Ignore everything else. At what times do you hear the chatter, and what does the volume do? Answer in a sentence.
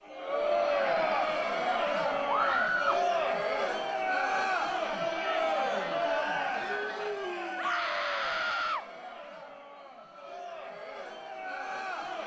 The chatter can be heard from 0.0 to 12.2 s, getting quieter.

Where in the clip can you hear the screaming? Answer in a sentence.
You can hear the screaming from 2.2 to 3.0 s and from 7.5 to 8.8 s.